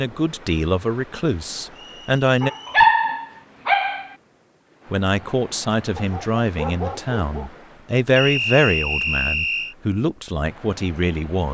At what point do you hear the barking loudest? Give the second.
3 s.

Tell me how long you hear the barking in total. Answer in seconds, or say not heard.
3 s.